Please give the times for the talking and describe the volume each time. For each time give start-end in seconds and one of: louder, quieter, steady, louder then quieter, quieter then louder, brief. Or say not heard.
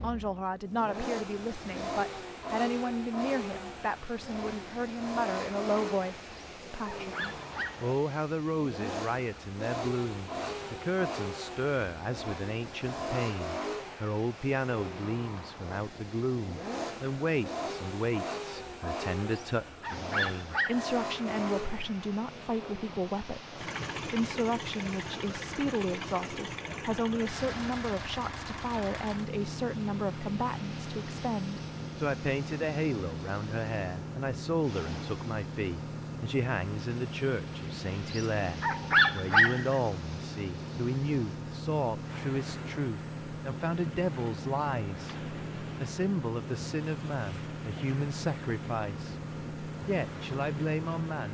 0.0-51.3 steady.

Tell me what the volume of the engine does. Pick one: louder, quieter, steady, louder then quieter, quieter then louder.
steady.